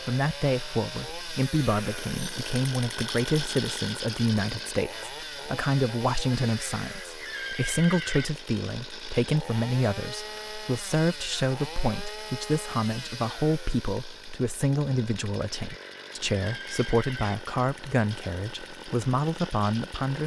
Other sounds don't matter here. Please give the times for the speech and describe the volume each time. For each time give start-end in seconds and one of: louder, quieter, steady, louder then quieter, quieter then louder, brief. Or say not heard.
0.0-20.2 steady.